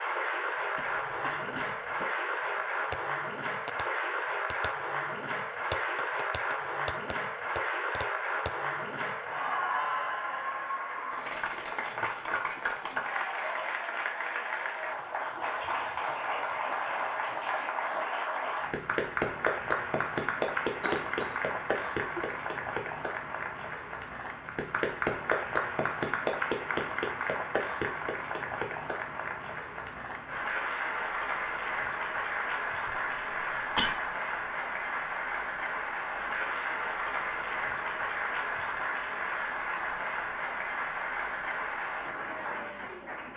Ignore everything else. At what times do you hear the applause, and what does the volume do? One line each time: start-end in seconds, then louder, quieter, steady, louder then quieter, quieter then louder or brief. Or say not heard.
0.0-43.3 steady.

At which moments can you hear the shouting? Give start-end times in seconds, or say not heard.
not heard.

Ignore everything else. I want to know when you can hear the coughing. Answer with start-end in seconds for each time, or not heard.
0.8-2.0, 20.8-22.4, 32.9-34.0.